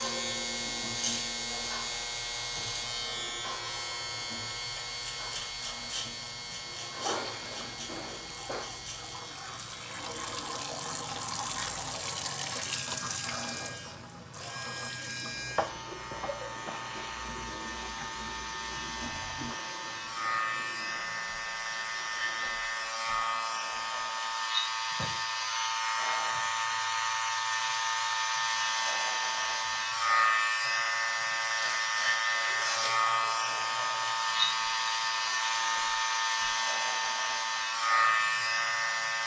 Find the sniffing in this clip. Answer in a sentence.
The sniffing can be heard from 6.5 to 8.7 s and from 31.6 to 33.0 s.